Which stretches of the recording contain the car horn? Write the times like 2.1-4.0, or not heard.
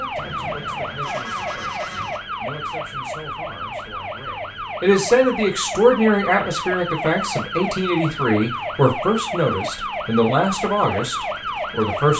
0.1-2.2.